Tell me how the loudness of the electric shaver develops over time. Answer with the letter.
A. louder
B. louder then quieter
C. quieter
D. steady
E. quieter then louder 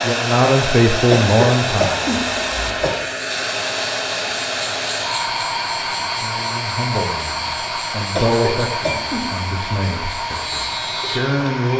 D.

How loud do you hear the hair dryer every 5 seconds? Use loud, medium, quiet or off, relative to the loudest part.
loud, loud, medium.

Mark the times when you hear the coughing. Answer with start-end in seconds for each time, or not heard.
1.1-3.0, 8.2-9.4.